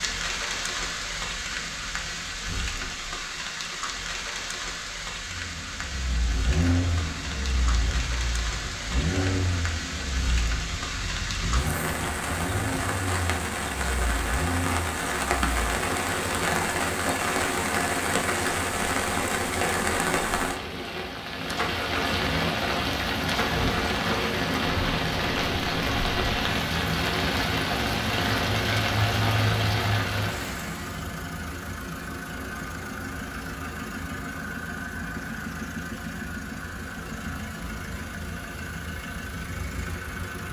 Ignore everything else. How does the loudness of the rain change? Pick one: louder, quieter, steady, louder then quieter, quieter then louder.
louder.